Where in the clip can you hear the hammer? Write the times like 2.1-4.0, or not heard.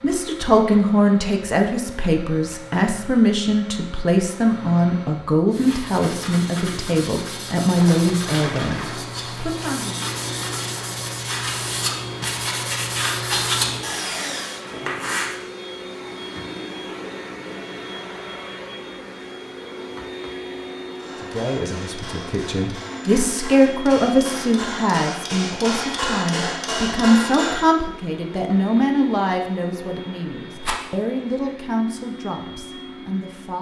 20.9-27.7.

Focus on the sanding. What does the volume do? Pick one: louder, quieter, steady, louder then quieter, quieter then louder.
louder.